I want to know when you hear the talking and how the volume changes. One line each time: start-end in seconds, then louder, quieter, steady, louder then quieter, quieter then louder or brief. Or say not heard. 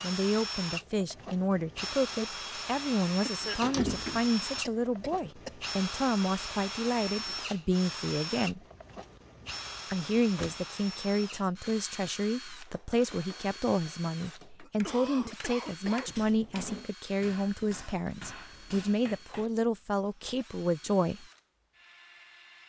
0.0-8.6 steady
9.9-21.2 steady.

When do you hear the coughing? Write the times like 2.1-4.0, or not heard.
3.2-5.5, 14.6-16.1.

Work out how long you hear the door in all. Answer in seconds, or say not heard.
3 s.